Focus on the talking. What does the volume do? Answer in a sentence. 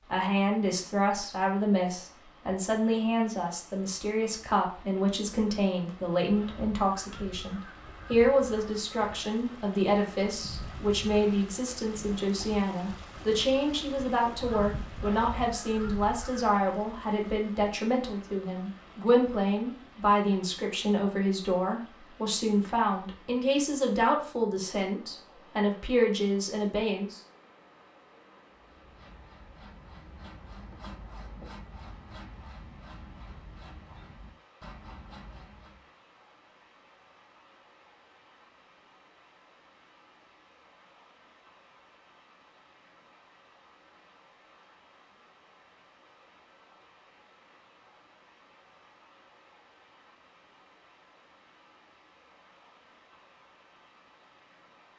The loudness of the talking stays about the same.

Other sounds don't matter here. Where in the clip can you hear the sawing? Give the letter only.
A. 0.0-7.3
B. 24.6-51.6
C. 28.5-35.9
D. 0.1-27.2
C.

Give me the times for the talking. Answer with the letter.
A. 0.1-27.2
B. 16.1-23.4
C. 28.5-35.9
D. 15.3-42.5
A.